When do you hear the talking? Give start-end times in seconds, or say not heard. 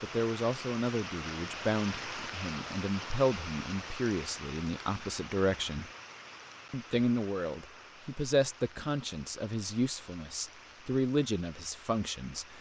0.0-5.9, 6.7-12.5.